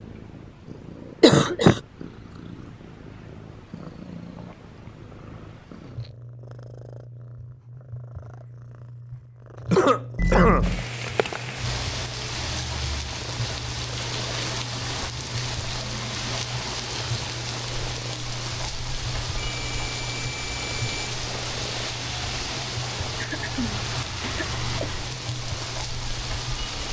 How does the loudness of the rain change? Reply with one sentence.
The volume of the rain stays about the same.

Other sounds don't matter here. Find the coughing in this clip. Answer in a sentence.
You can hear the coughing from 1.2 to 1.8 s, from 9.7 to 10.7 s and from 23.2 to 24.9 s.